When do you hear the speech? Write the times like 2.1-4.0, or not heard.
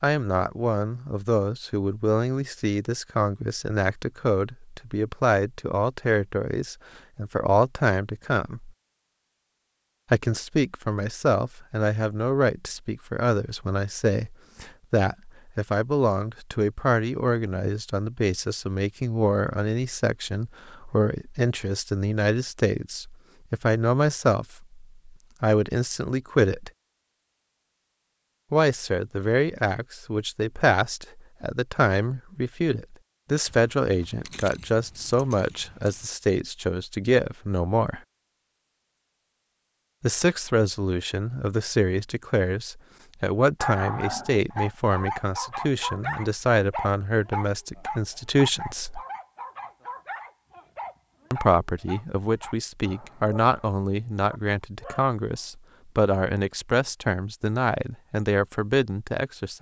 0.0-8.7, 10.1-26.7, 28.5-38.0, 40.0-49.0, 51.3-59.5.